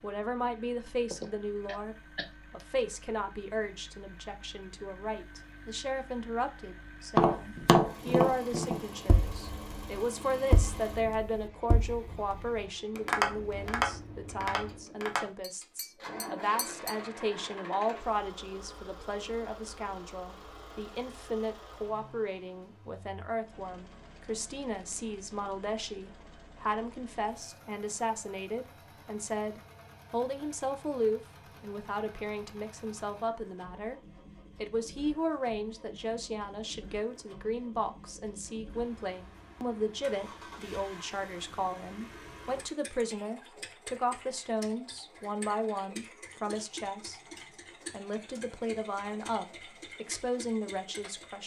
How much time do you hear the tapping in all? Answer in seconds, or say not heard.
10 s.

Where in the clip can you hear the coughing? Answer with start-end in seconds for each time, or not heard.
1.1-2.2.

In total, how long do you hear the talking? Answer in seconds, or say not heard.
50 s.